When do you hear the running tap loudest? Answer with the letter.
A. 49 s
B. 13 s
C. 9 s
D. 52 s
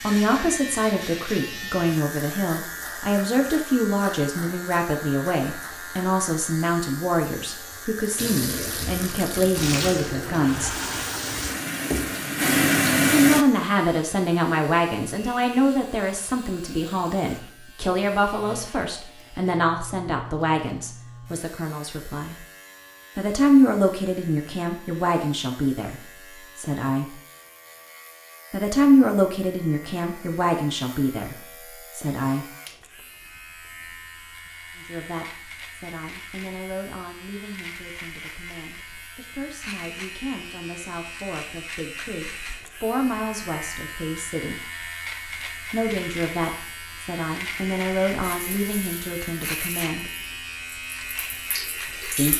B.